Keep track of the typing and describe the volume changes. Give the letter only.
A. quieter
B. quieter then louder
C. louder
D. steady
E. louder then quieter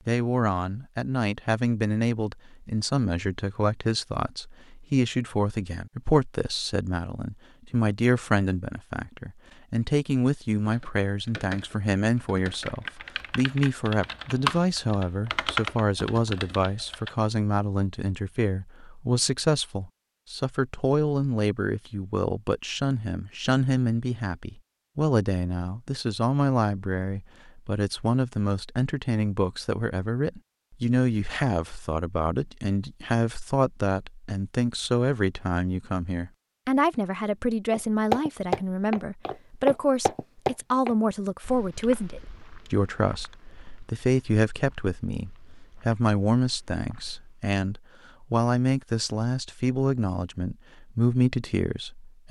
E.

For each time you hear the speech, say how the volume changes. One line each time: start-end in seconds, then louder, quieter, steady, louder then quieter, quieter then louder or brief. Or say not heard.
0.1-52.2 steady.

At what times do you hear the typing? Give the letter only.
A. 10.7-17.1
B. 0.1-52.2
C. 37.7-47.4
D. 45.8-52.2
A.